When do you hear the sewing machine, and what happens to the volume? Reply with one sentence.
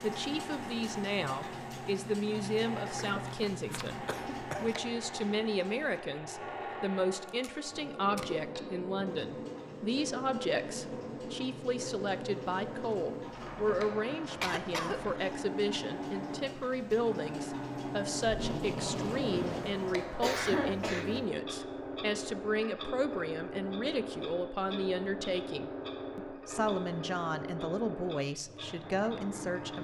You can hear the sewing machine from 0.0 to 29.7 s, at a steady volume.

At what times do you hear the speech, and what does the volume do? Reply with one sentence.
You can hear the speech from 0.0 to 29.7 s, at a steady volume.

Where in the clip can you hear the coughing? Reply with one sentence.
You can hear the coughing from 3.2 to 4.8 s, from 14.4 to 15.3 s and from 20.2 to 21.3 s.